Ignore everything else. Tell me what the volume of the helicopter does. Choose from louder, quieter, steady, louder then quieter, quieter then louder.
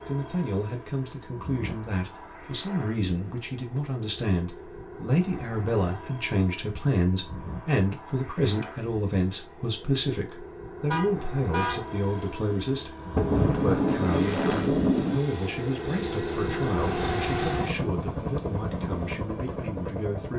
louder.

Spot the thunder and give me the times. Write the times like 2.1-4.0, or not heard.
13.2-15.2.